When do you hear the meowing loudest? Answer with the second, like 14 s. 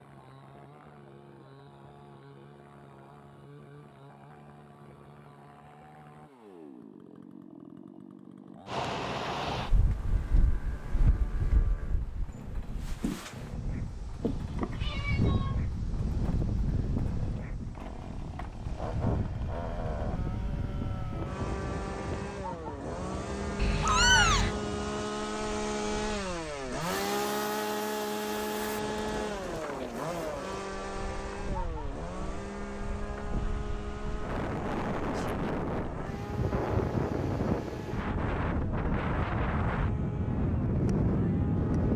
24 s.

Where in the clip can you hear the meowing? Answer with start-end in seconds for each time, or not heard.
14.2-15.6, 23.6-24.6.